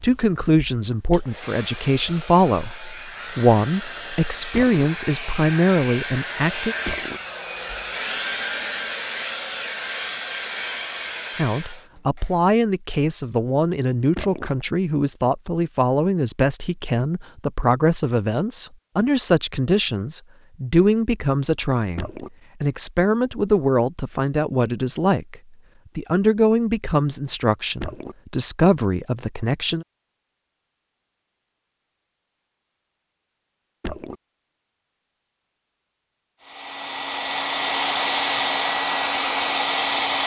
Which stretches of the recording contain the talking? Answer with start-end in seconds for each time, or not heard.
0.0-6.8, 11.3-25.4, 25.9-29.9.